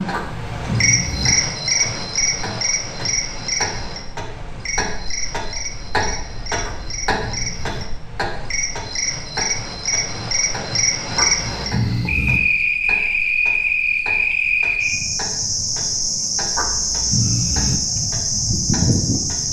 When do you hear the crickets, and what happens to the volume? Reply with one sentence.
You can hear the crickets from 0.0 to 19.4 s, getting quieter then louder.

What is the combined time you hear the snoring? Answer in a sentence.
The snoring can be heard for 5 seconds in total.